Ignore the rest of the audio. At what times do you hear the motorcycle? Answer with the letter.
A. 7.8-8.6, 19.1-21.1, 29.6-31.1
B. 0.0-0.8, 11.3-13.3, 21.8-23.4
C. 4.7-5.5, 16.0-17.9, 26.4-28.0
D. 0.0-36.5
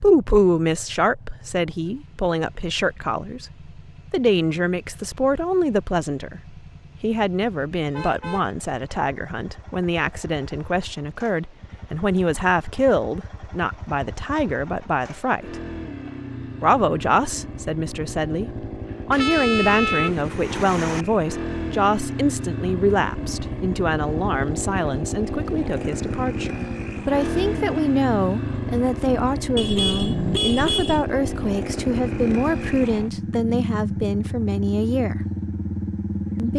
D.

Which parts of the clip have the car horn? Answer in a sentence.
The car horn can be heard from 7.8 to 8.6 s, from 19.1 to 21.1 s and from 29.6 to 31.1 s.